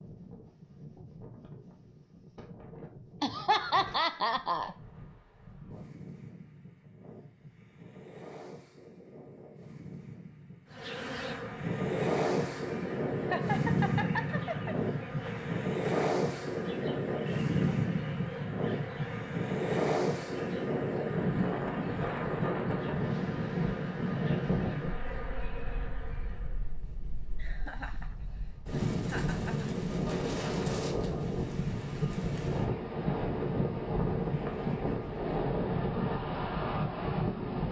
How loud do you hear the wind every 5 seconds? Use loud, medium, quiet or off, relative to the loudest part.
quiet, quiet, loud, loud, loud, medium, loud, loud.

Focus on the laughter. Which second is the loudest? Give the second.
4 s.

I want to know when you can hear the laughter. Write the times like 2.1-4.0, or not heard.
3.2-4.8, 13.3-14.8, 27.4-29.6.